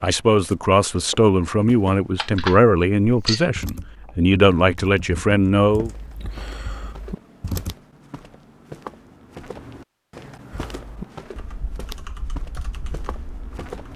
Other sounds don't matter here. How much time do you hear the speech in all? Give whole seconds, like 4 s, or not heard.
6 s.